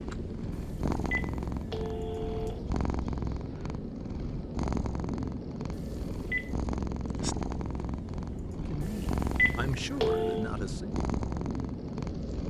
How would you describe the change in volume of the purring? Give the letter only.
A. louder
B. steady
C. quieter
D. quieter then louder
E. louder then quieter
B.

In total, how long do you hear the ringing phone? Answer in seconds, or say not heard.
5 s.